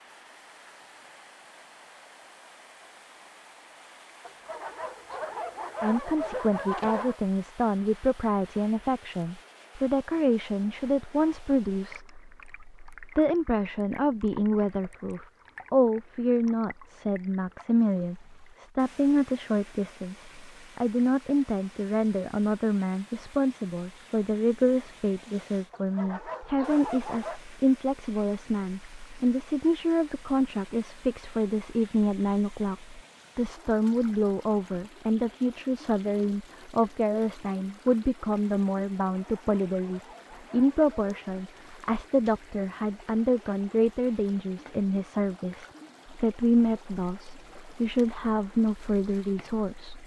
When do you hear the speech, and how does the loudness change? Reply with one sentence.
You can hear the speech from 5.8 to 50.0 s, at a steady volume.